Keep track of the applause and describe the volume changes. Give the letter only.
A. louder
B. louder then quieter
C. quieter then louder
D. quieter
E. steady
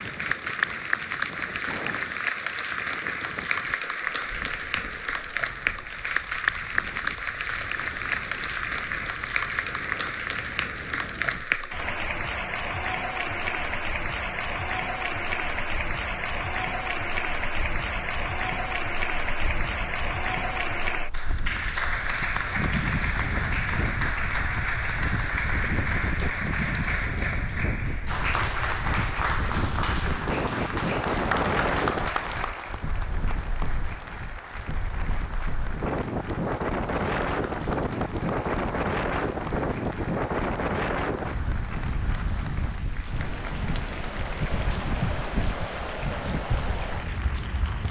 D.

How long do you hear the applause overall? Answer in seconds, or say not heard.
48 s.